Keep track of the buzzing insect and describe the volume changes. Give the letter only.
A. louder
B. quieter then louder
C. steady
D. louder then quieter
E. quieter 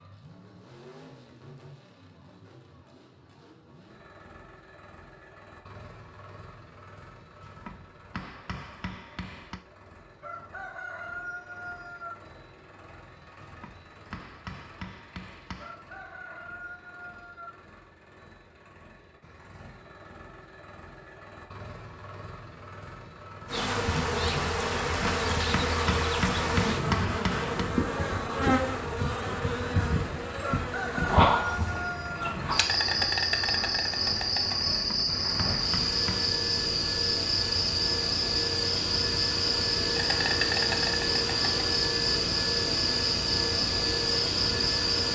C.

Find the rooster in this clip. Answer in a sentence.
You can hear the rooster from 10.2 to 12.2 s, from 15.6 to 17.5 s and from 30.4 to 32.3 s.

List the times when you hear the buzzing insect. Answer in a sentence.
The buzzing insect can be heard from 23.4 to 45.1 s.